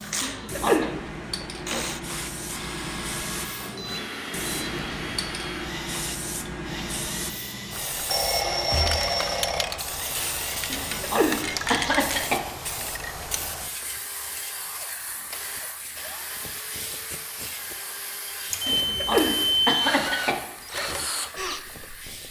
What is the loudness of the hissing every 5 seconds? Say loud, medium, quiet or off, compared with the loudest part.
loud, loud, loud, medium, medium.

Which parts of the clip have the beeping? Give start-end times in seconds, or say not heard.
3.6-5.2, 8.1-9.7, 18.5-19.9.